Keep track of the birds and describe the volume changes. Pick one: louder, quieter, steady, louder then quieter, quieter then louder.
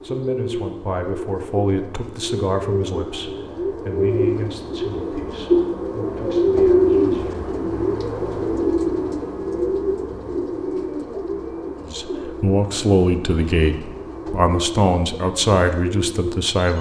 louder then quieter.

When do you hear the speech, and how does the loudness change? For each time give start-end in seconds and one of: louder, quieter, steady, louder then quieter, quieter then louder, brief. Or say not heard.
0.0-7.5 quieter
11.8-16.7 steady.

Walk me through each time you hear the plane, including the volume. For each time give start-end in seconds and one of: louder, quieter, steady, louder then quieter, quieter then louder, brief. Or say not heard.
not heard.